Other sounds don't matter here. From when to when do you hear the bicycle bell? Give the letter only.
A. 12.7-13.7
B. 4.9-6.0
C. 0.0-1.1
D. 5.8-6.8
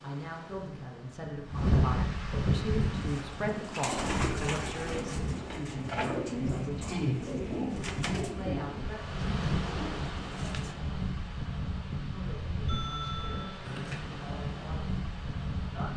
A.